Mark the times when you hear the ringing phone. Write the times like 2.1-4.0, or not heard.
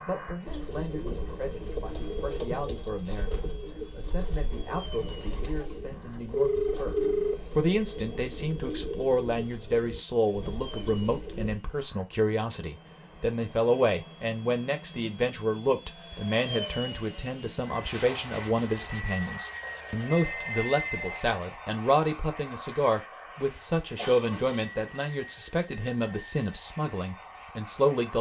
6.3-7.4, 19.6-21.4.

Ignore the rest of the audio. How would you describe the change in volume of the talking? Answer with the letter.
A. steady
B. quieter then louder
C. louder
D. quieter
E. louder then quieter
C.